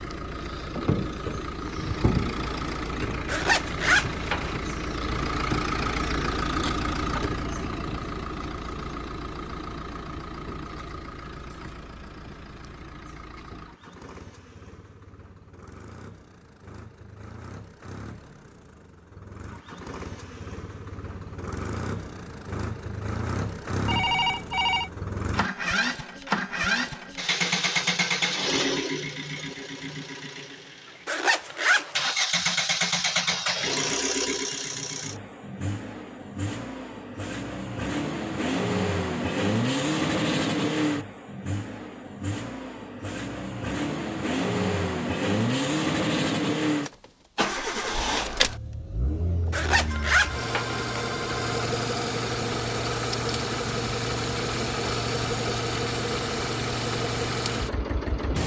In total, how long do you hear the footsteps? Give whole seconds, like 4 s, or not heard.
not heard.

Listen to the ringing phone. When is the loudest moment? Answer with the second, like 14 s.
24 s.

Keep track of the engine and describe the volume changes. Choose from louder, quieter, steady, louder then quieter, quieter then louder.
quieter then louder.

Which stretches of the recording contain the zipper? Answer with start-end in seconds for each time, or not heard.
3.2-4.6, 31.1-32.1, 49.5-50.9.